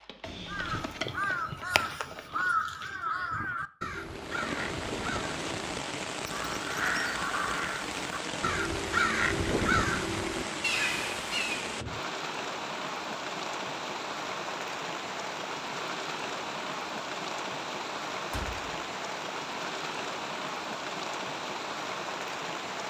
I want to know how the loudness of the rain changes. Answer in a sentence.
The loudness of the rain stays about the same.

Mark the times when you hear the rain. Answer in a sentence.
The rain can be heard from 3.9 to 22.8 s.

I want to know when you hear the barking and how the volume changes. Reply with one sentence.
You can't hear the barking here.